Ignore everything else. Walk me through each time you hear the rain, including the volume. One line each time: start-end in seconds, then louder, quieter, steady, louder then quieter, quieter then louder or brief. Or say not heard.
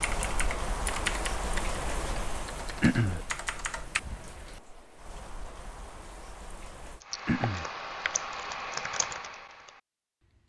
0.0-7.0 quieter.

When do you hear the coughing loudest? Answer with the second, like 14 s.
3 s.